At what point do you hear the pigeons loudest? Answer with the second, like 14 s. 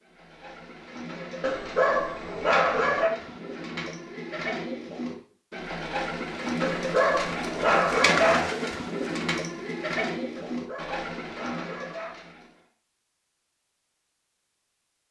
8 s.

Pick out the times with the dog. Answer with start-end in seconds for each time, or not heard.
1.4-3.1, 6.6-8.4, 10.3-12.2.